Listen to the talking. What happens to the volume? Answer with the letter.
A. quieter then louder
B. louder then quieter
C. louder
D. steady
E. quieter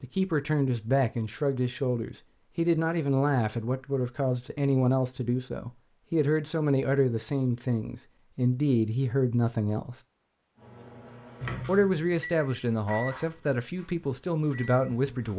D.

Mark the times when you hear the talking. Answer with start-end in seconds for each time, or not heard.
0.0-10.0, 11.7-15.3.